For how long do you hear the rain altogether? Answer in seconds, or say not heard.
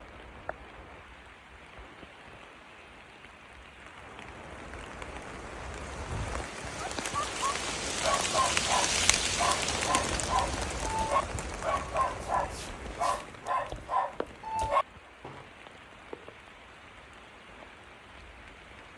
19 s.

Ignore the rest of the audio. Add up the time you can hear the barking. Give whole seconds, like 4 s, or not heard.
9 s.